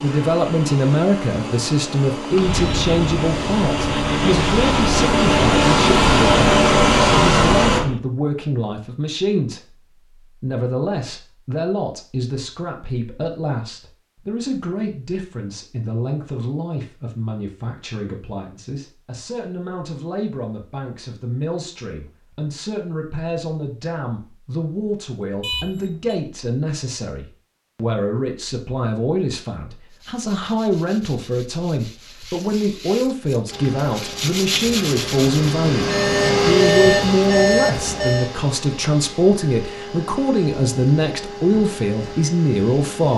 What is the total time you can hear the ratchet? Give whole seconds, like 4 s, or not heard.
not heard.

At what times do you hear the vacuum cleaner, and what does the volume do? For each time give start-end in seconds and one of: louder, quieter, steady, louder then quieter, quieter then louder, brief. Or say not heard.
0.0-7.8 louder
33.5-43.1 louder then quieter.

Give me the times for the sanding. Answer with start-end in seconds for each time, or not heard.
2.3-8.0, 29.9-35.5.